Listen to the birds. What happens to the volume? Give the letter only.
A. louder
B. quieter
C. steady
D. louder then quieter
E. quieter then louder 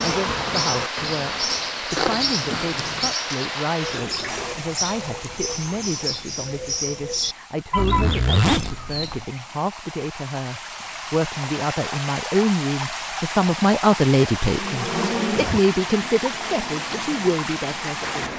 C.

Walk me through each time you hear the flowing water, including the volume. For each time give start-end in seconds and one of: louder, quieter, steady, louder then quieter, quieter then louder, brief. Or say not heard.
0.0-18.3 quieter then louder.